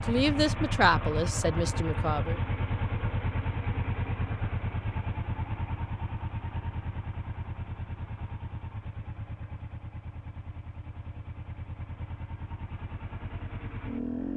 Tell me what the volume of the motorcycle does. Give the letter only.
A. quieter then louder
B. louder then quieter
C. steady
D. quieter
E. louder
D.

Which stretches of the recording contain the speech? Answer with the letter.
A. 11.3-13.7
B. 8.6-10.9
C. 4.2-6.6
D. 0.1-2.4
D.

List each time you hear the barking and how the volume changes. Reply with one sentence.
The barking can't be heard in this clip.